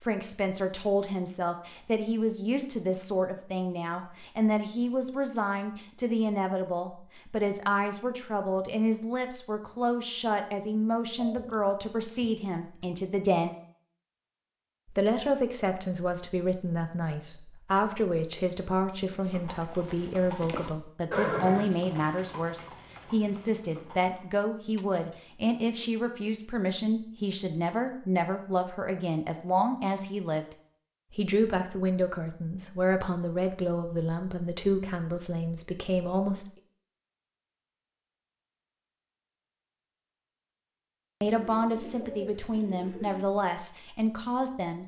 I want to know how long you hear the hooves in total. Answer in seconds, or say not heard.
5 s.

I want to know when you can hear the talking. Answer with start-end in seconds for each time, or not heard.
0.0-13.6, 14.9-30.4, 31.1-36.5, 41.2-44.8.